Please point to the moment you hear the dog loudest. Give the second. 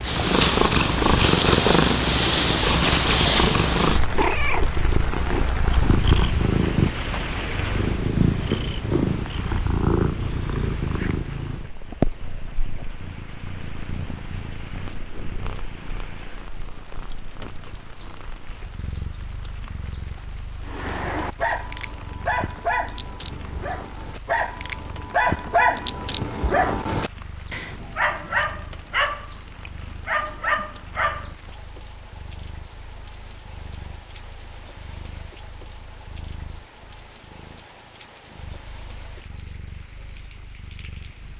26 s.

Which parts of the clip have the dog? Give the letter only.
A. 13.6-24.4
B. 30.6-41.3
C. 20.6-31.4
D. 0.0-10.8
C.